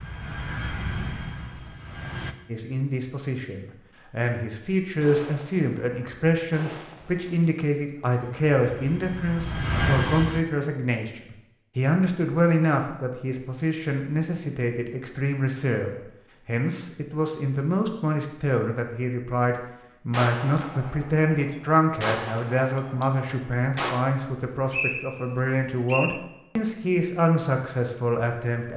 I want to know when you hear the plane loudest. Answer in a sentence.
The volume of the plane peaks at 10 seconds.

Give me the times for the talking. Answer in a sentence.
You can hear the talking from 2.5 to 28.7 s.